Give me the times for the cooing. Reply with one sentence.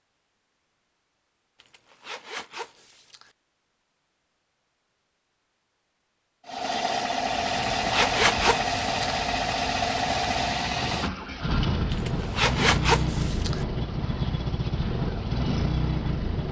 The cooing can't be heard in this clip.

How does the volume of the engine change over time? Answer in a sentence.
The loudness of the engine stays about the same.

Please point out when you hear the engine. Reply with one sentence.
The engine can be heard from 6.5 to 16.4 s.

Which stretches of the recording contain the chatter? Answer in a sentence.
The chatter can't be heard in this clip.